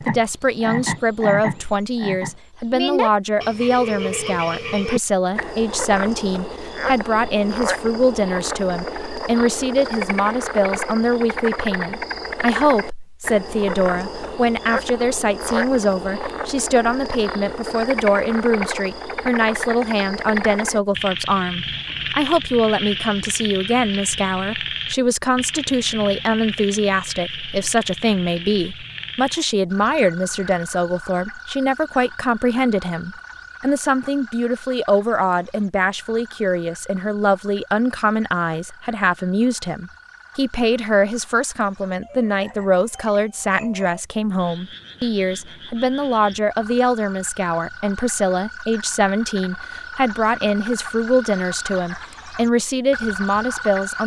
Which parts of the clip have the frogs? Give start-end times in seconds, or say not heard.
0.0-54.0.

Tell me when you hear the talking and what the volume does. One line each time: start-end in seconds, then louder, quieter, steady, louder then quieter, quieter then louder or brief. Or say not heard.
0.0-54.0 steady.